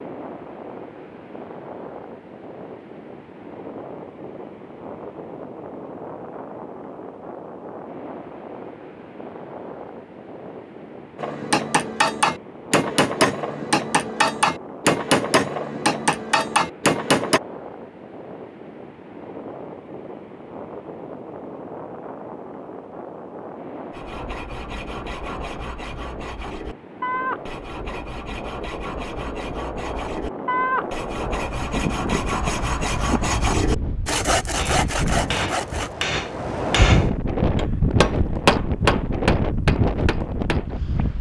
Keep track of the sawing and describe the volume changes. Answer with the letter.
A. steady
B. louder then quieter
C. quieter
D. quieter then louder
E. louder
E.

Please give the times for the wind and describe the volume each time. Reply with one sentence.
You can hear the wind from 0.0 to 41.1 s, getting louder.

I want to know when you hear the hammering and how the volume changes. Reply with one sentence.
You can hear the hammering from 11.2 to 17.4 s, at a steady volume; and from 34.5 to 40.8 s, getting louder then quieter.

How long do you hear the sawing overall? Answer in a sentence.
You can hear the sawing for 12 seconds altogether.